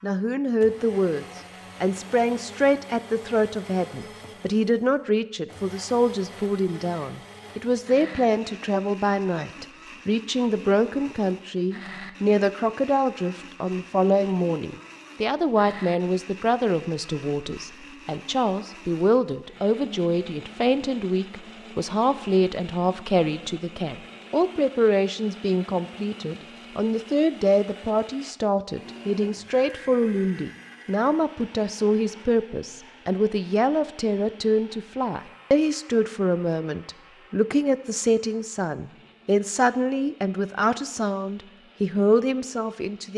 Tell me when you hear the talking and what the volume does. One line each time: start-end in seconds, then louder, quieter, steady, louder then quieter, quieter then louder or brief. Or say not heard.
0.0-43.1 steady.